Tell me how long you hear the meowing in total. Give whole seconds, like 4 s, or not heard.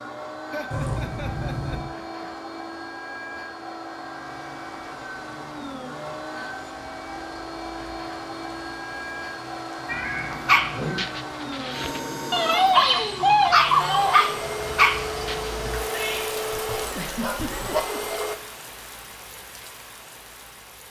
3 s.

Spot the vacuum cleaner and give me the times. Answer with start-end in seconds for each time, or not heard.
0.0-18.4.